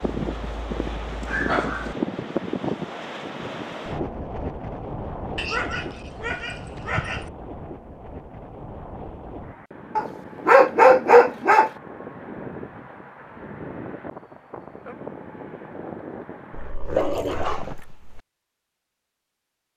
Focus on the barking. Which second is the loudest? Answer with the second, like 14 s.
11 s.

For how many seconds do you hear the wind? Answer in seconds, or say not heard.
17 s.